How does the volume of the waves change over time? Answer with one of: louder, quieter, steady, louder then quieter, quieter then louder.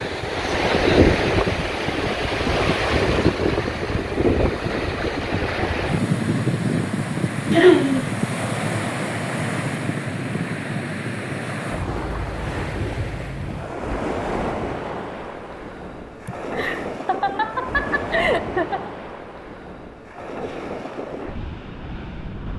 quieter.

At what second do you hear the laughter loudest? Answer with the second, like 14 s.
8 s.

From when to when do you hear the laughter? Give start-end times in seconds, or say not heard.
7.5-8.1, 16.2-18.9.